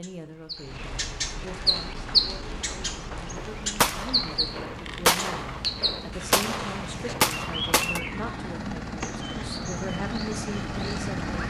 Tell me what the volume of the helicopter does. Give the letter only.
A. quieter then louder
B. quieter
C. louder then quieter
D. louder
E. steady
D.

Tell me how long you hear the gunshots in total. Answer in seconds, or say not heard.
5 s.